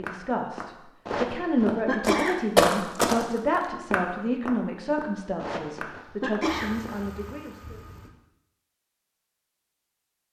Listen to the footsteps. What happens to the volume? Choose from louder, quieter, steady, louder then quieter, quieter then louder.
louder then quieter.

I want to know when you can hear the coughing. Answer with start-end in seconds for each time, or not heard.
1.1-2.4, 5.3-6.8.